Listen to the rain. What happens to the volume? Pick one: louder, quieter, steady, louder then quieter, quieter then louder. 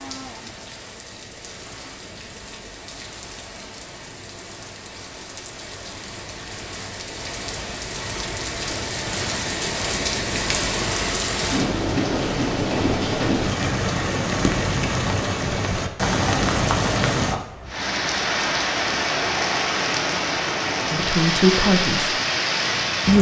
louder.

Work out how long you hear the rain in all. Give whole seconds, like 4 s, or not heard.
23 s.